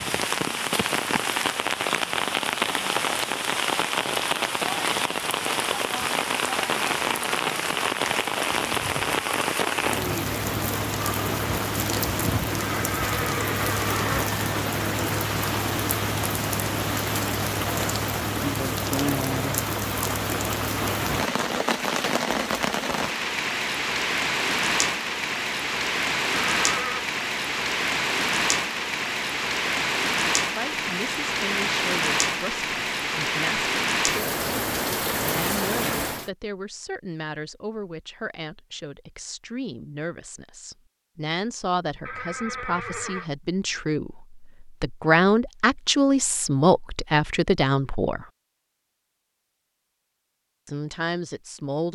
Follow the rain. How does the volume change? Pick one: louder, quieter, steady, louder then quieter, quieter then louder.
steady.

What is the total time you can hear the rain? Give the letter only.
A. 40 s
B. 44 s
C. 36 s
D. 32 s
C.